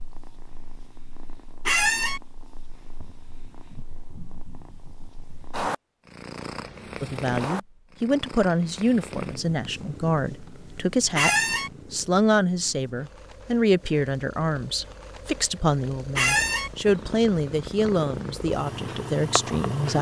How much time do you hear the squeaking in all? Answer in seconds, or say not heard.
2 s.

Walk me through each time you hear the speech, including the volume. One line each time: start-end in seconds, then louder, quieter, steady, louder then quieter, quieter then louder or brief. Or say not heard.
7.0-19.9 steady.